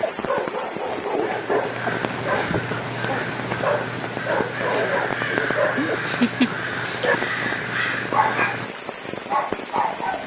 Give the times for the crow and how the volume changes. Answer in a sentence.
The crow can be heard from 1.2 to 8.7 s, at a steady volume.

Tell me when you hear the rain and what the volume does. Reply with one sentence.
The rain can be heard from 0.0 to 10.2 s, at a steady volume.